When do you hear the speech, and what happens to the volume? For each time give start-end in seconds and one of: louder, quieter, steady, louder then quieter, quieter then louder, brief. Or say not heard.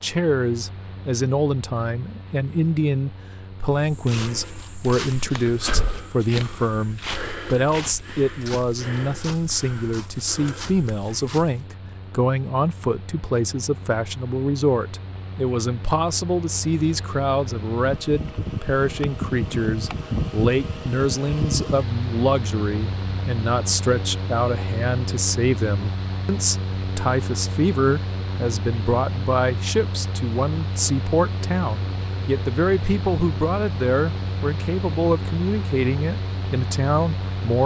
0.0-37.6 steady.